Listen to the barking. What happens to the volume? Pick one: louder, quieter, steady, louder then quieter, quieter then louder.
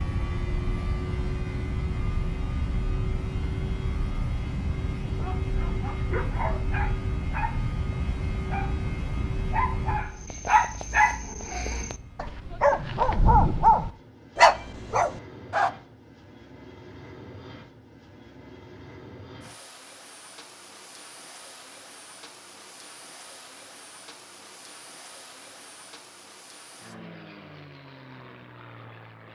louder.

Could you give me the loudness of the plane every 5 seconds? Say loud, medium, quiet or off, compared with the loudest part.
loud, loud, quiet, quiet, quiet, quiet.